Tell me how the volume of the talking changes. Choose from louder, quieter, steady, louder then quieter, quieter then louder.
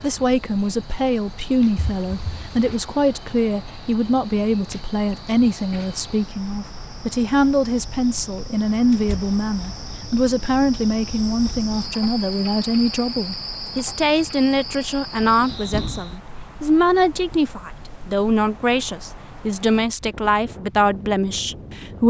steady.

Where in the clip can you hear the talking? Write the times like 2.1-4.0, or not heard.
0.0-22.0.